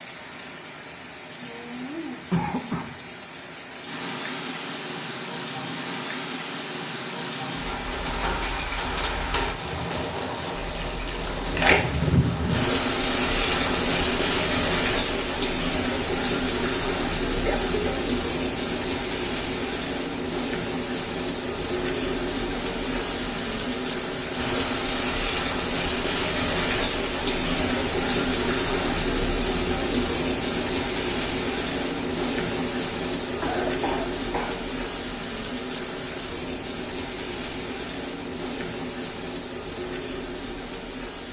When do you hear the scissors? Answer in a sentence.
You can hear the scissors from 10.6 to 11.8 s.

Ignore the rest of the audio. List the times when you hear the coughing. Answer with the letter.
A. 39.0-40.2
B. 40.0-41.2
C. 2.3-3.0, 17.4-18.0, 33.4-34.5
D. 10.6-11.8
C.